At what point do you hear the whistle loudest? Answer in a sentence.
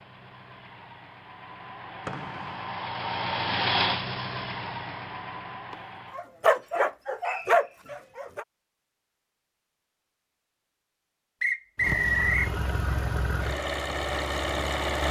The volume of the whistle peaks at 12 seconds.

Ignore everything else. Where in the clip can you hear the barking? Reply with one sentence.
The barking can be heard from 5.7 to 8.4 s.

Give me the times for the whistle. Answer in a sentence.
The whistle can be heard from 2.0 to 2.5 s, from 7.2 to 7.7 s and from 11.4 to 12.5 s.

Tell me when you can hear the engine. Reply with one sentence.
You can hear the engine from 0.0 to 6.2 s and from 11.8 to 15.0 s.